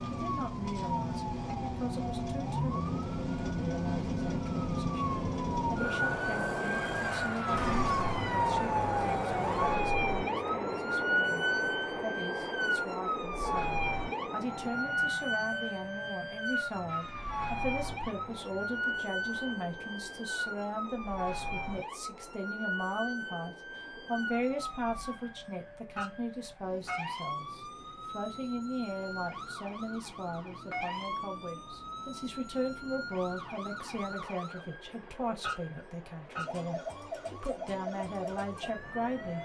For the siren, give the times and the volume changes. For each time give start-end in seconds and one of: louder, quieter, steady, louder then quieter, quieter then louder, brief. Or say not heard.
0.0-39.4 quieter.